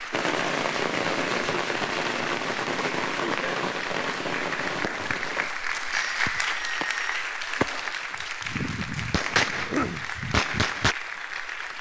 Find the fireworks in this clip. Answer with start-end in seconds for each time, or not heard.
0.1-10.9.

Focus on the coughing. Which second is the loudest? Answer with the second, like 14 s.
10 s.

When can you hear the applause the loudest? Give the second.
6 s.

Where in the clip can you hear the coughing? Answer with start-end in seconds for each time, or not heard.
3.2-3.6, 9.5-10.1.